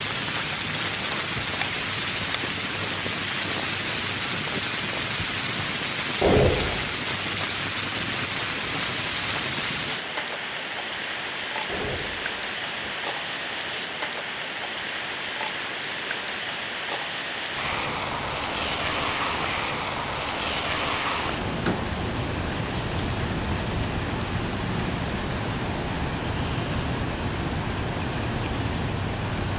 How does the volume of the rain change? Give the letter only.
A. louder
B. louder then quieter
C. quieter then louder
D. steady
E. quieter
D.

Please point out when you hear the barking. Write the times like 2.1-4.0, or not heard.
not heard.